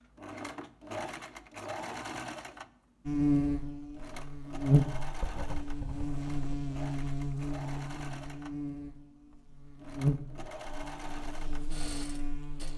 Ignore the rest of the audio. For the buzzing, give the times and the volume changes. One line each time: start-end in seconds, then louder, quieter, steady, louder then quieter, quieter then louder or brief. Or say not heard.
3.0-12.7 quieter.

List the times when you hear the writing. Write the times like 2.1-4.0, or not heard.
5.0-6.6.